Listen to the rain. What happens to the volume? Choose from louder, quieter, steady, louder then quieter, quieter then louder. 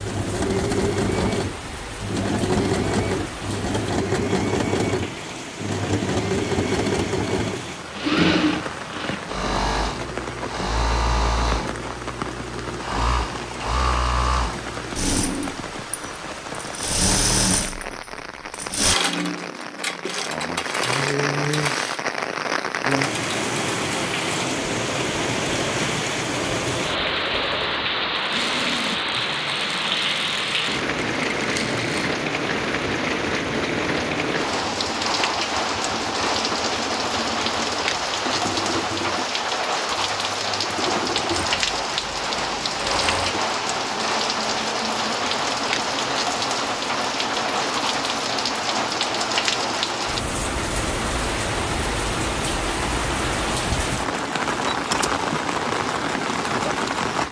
louder.